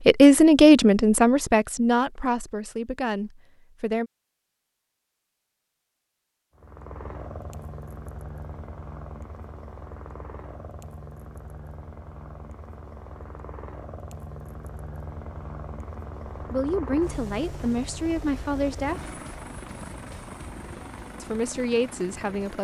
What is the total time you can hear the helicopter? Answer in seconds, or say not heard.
16 s.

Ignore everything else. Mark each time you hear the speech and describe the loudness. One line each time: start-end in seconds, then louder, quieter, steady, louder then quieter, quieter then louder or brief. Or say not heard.
0.1-4.1 quieter
16.5-19.1 brief
21.2-22.5 brief.